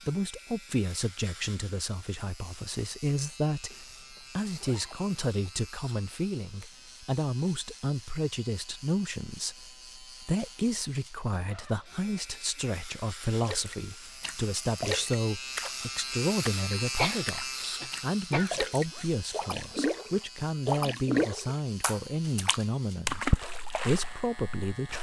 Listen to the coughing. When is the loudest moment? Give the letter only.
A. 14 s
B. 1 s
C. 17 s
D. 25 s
C.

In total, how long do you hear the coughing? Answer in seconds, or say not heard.
2 s.